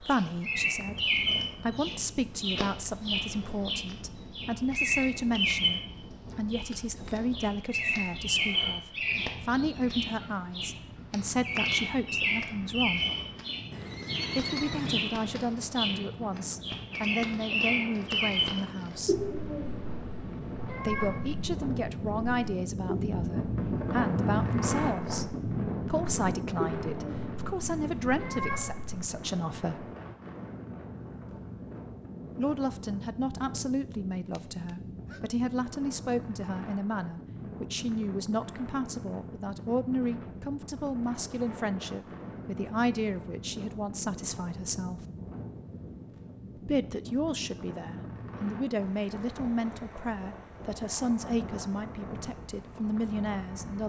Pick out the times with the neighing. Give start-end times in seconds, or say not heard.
13.7-15.2, 34.3-35.2.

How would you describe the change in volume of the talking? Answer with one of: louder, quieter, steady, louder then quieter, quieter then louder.
steady.